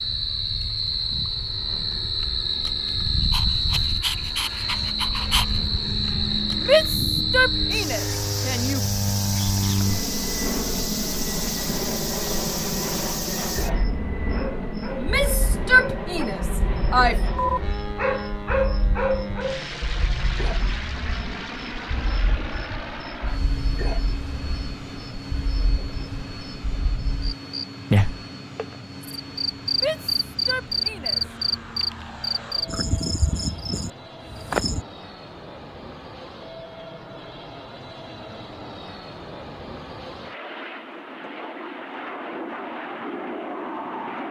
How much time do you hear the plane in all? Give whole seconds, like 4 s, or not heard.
44 s.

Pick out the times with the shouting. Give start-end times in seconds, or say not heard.
6.6-8.8, 14.9-17.2, 29.7-31.2.